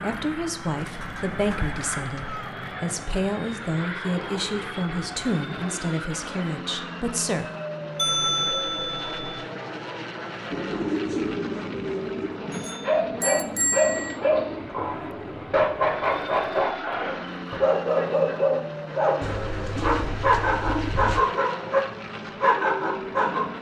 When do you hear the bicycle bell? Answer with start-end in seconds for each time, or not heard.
8.0-9.4, 12.5-14.2.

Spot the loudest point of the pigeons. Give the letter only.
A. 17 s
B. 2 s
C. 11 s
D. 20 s
C.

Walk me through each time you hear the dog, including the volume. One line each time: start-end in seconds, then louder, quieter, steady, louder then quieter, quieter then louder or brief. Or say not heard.
12.3-21.8 steady
22.4-23.4 brief.